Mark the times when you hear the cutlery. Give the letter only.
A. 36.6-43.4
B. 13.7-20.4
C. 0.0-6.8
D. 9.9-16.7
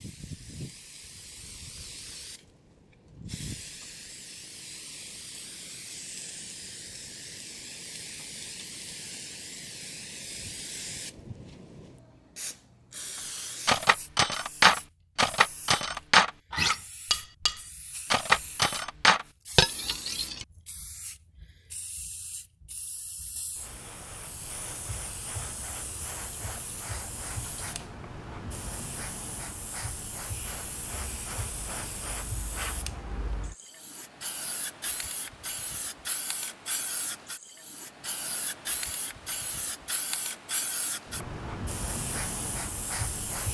B.